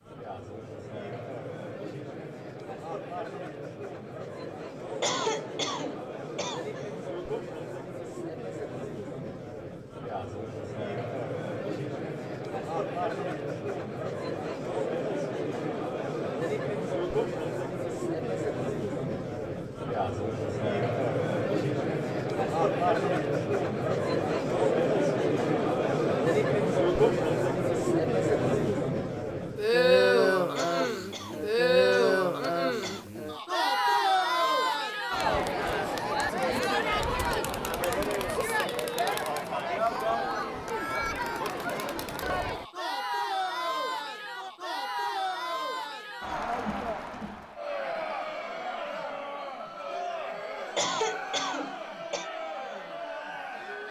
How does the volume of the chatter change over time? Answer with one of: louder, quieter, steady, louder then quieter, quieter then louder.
louder then quieter.